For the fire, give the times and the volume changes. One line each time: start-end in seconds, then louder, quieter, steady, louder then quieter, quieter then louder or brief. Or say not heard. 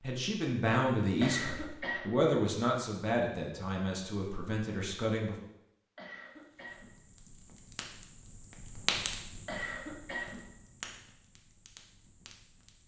6.4-12.8 louder then quieter.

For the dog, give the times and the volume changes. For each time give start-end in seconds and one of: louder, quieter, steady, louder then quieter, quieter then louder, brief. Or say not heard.
not heard.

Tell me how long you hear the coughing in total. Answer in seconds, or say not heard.
3 s.